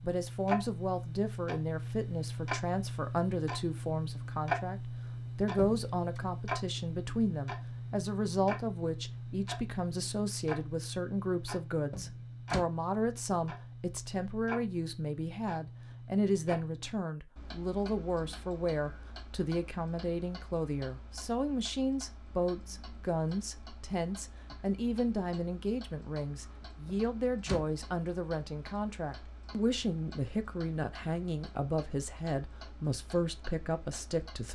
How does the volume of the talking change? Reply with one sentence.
The loudness of the talking stays about the same.